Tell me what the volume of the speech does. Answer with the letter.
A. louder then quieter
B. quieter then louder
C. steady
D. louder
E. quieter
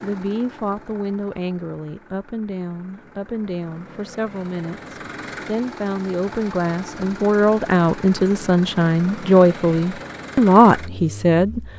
D.